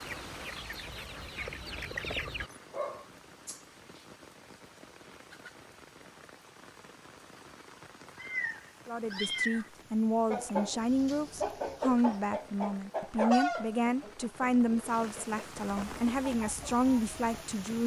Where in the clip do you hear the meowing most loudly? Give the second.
9 s.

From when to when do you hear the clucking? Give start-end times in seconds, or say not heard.
0.0-2.5, 10.2-17.4.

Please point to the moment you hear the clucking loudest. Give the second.
13 s.